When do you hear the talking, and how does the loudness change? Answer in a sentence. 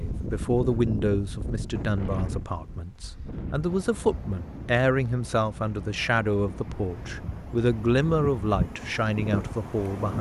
You can hear the talking from 0.0 to 10.1 s, at a steady volume.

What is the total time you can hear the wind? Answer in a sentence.
You can hear the wind for 10 seconds altogether.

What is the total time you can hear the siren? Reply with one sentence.
The siren can't be heard in this clip.